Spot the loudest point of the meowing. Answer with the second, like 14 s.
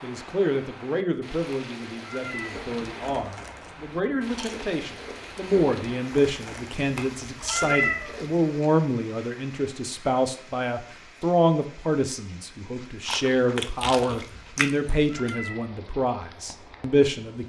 8 s.